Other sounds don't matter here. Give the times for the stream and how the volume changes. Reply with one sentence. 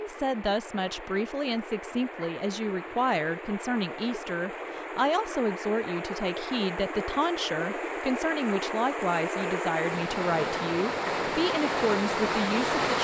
The stream can be heard from 0.0 to 13.0 s, getting louder.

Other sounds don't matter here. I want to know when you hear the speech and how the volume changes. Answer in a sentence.
The speech can be heard from 0.0 to 13.0 s, at a steady volume.